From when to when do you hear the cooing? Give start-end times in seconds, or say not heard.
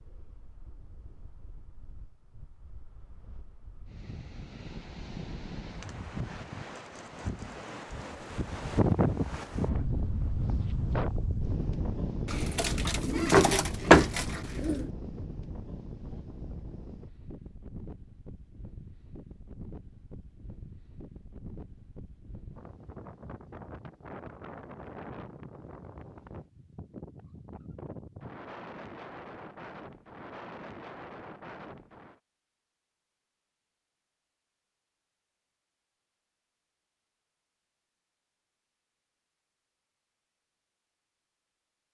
12.2-14.9.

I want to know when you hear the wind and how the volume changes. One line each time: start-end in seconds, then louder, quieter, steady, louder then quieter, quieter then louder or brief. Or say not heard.
0.0-32.2 louder then quieter.